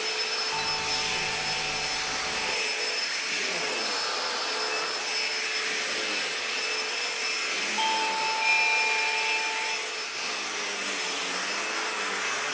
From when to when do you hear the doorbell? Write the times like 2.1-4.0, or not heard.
0.5-2.5, 7.8-9.7.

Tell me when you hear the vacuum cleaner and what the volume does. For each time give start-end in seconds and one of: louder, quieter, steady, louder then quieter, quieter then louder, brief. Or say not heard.
0.0-12.4 steady.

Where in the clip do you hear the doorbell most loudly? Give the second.
9 s.